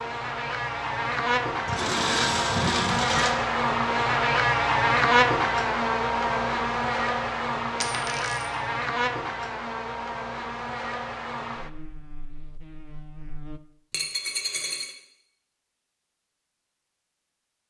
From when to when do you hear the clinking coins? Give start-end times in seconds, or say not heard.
1.6-3.4, 7.8-8.5, 13.9-14.9.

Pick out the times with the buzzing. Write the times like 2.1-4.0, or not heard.
0.0-13.6.